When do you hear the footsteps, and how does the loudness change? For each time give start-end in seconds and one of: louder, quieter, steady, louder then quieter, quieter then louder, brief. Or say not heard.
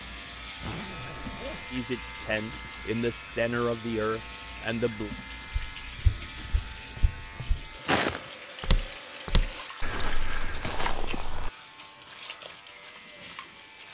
5.5-11.5 louder then quieter.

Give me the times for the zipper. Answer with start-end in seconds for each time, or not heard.
0.6-1.8.